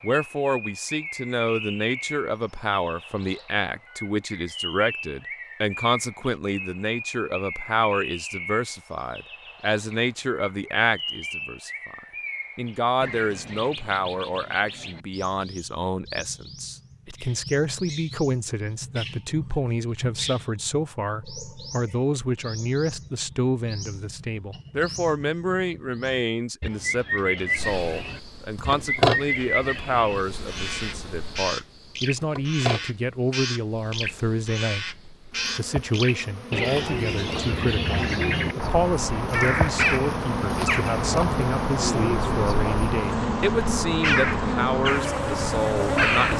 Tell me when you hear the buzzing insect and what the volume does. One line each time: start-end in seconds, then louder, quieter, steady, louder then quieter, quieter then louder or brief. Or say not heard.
27.6-46.3 quieter then louder.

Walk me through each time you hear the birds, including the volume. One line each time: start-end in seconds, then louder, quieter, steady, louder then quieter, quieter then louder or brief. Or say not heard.
0.0-46.3 louder.